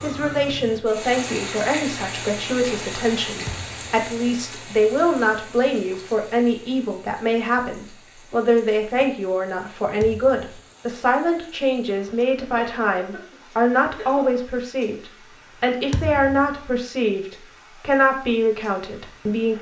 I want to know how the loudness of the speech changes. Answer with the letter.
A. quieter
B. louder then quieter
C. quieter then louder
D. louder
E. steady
E.